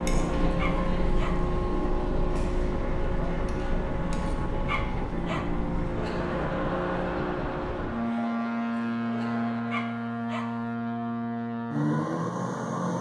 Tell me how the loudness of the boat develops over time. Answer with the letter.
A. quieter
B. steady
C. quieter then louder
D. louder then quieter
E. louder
B.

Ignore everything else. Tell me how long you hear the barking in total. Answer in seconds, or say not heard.
3 s.